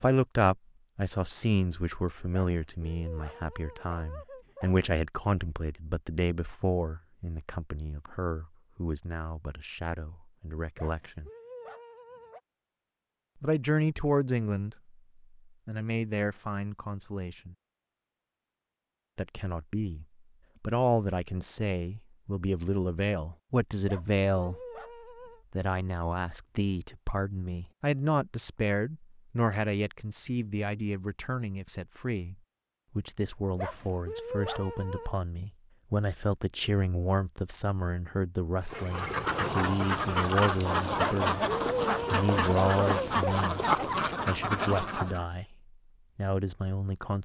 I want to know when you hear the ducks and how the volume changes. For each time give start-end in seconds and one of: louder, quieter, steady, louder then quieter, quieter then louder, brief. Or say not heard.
38.6-45.2 steady.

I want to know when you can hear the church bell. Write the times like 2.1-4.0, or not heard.
not heard.